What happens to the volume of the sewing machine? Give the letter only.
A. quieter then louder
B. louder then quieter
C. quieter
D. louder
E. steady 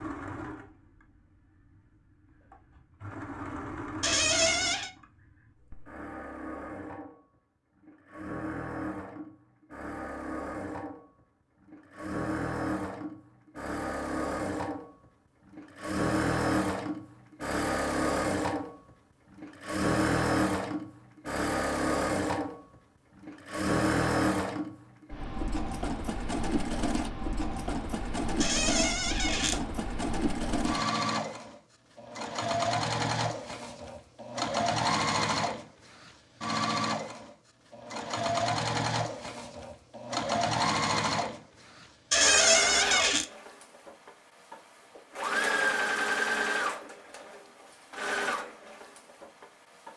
D.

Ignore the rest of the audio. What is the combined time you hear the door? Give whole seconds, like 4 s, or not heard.
3 s.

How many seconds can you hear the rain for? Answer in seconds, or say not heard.
not heard.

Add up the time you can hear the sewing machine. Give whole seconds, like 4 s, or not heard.
50 s.